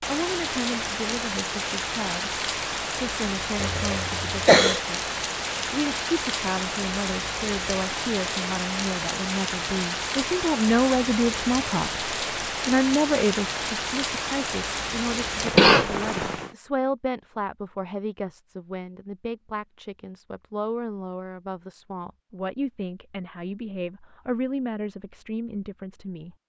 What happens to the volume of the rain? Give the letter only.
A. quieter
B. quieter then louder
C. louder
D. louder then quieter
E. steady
E.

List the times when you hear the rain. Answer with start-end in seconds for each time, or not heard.
0.0-16.6.